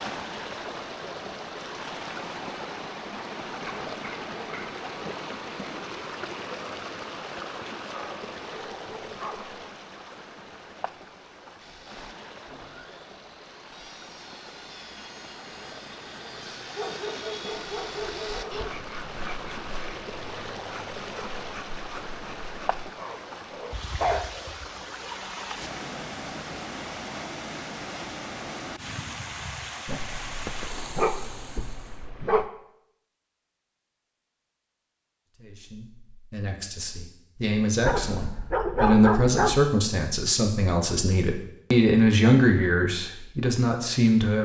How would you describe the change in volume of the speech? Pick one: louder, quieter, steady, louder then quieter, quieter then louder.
louder.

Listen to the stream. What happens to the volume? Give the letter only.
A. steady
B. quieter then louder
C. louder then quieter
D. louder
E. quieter
B.